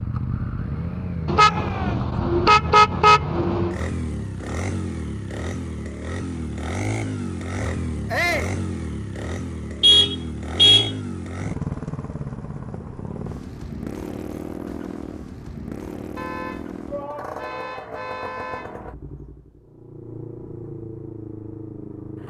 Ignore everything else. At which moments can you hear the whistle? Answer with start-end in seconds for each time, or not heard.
not heard.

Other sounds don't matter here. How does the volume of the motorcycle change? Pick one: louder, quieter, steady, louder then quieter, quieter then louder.
quieter.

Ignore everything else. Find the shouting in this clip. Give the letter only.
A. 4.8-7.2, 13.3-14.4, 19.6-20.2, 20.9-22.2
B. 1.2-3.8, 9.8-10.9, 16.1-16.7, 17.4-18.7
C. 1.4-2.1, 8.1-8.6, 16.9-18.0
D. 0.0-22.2
C.